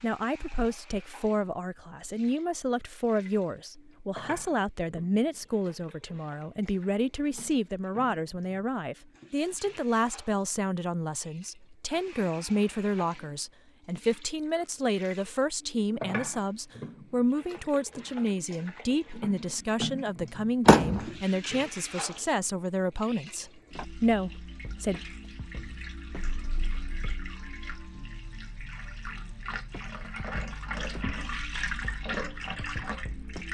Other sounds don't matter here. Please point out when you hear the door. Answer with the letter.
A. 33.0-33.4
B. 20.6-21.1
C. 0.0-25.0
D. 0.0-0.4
B.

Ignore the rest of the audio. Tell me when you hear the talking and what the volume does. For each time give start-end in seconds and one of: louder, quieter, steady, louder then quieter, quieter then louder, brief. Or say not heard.
0.0-25.0 steady.